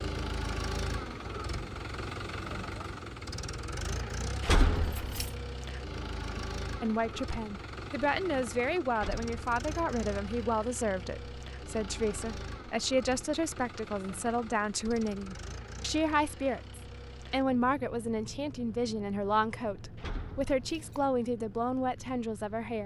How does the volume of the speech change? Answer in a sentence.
The loudness of the speech stays about the same.